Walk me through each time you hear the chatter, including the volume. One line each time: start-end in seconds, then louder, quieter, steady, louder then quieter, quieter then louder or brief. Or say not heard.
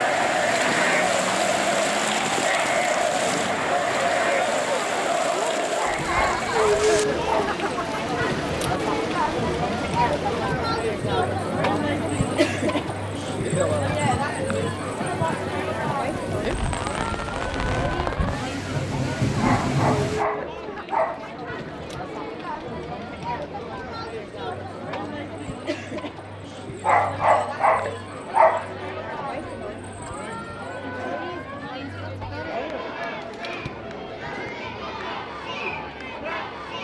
0.0-36.7 quieter.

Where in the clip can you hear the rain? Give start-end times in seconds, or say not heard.
0.0-20.2.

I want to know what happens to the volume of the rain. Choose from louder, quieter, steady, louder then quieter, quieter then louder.
quieter then louder.